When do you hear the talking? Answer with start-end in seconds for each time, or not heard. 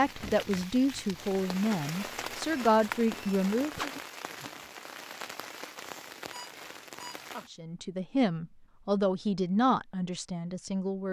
0.0-3.9, 7.5-11.0.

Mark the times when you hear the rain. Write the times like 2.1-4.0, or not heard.
0.0-7.5.